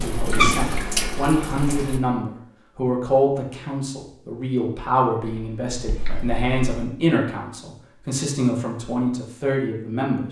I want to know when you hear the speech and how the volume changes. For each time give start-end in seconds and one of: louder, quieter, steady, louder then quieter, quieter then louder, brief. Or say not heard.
0.0-10.2 steady.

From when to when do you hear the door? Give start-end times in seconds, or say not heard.
not heard.